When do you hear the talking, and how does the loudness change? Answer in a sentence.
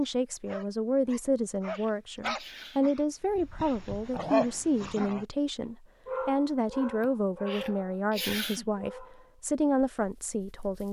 You can hear the talking from 0.0 to 10.8 s, at a steady volume.